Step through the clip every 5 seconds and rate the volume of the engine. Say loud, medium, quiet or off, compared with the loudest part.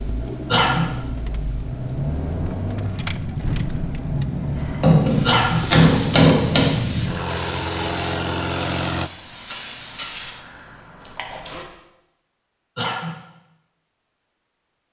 loud, loud, off.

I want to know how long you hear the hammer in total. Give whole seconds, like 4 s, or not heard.
2 s.